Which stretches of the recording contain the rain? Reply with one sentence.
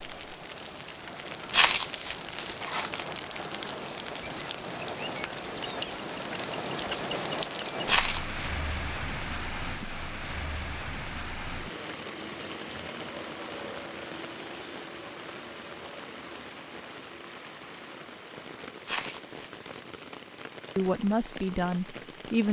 The rain can be heard from 0.0 to 22.4 s.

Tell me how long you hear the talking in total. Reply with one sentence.
You can hear the talking for 2 seconds altogether.